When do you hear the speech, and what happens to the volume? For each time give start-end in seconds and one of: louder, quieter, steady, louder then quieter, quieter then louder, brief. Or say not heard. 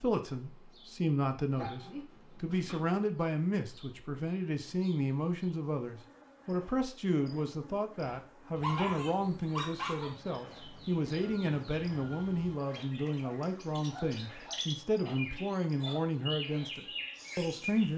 0.0-17.9 steady.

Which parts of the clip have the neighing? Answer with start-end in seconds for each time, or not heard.
not heard.